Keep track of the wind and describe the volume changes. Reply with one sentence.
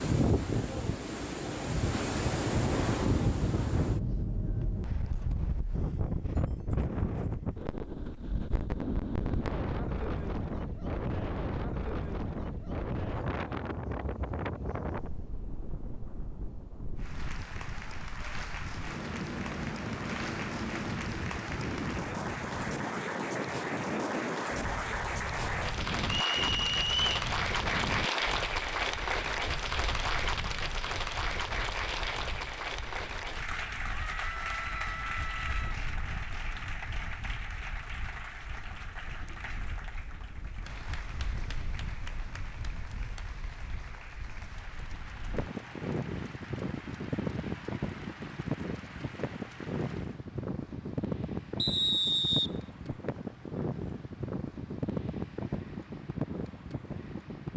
The volume of the wind goes down, then up.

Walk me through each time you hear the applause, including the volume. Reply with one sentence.
You can hear the applause from 16.9 to 50.2 s, getting louder then quieter.